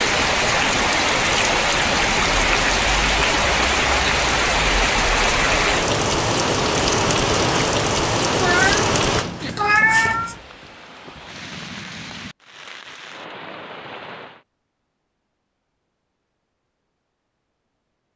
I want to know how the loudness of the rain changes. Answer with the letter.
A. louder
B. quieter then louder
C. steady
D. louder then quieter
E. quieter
E.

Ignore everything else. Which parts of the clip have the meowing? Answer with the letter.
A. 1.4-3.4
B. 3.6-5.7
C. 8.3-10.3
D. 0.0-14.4
C.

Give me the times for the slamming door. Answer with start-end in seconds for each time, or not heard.
not heard.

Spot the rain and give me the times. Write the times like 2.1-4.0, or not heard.
0.0-14.4.